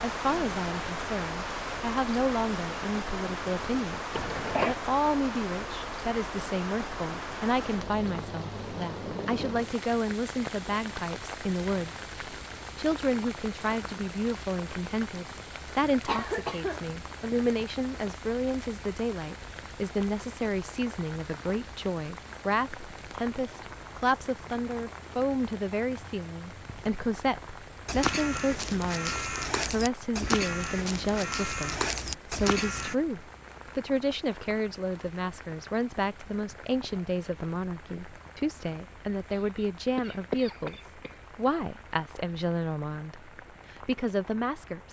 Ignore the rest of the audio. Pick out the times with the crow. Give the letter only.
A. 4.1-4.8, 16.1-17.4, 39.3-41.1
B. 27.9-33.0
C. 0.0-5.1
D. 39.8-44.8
B.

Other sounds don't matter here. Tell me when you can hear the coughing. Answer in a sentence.
You can hear the coughing from 4.1 to 4.8 s, from 16.1 to 17.4 s and from 39.3 to 41.1 s.